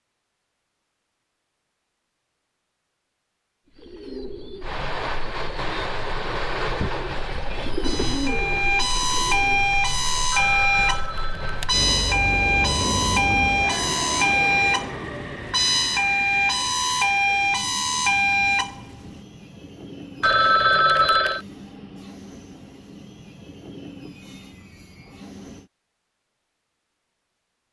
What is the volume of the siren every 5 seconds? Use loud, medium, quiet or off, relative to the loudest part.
off, loud, loud, loud, off, off.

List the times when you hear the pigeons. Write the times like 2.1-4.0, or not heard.
3.6-9.8.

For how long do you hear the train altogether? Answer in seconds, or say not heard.
21 s.